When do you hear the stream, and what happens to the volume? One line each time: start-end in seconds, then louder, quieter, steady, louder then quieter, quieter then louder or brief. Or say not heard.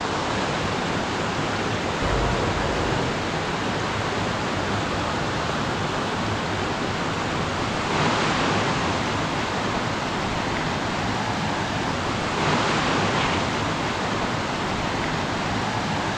0.0-16.1 steady.